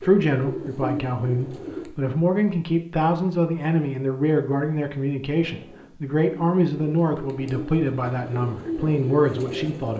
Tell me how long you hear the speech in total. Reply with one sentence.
You can hear the speech for 10 seconds altogether.